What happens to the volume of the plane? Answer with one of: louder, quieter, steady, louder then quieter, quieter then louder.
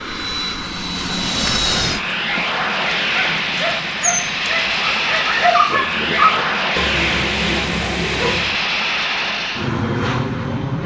steady.